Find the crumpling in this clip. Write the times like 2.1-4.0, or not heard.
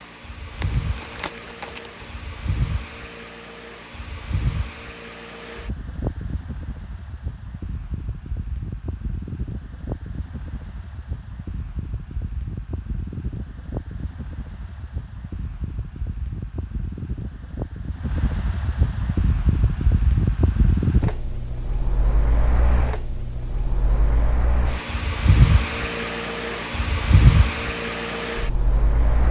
0.5-2.1.